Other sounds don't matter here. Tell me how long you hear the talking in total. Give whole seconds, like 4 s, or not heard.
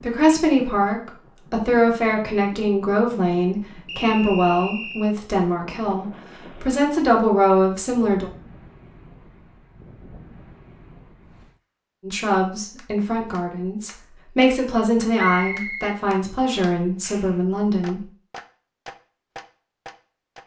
14 s.